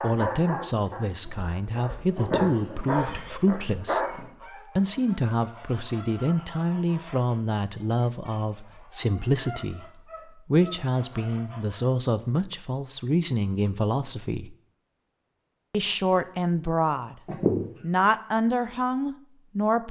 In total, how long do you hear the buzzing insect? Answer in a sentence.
You can't hear the buzzing insect here.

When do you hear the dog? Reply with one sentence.
The dog can be heard from 0.0 to 4.3 s.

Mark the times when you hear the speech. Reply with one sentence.
You can hear the speech from 0.0 to 14.6 s, from 15.7 to 17.1 s and from 17.8 to 19.8 s.